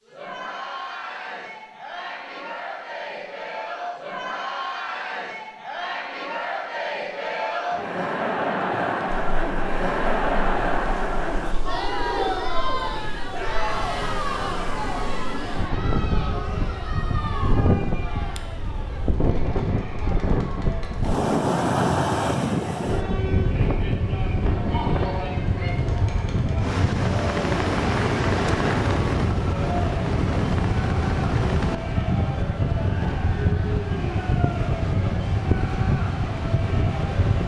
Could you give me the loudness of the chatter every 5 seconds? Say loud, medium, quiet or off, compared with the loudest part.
medium, loud, loud, medium, medium, medium, medium, medium.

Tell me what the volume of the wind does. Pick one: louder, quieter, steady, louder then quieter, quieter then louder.
louder.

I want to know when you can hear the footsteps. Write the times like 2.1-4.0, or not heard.
not heard.